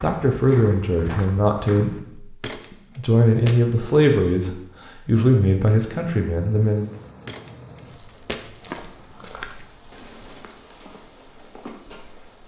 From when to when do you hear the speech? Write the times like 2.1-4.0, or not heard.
0.0-6.9.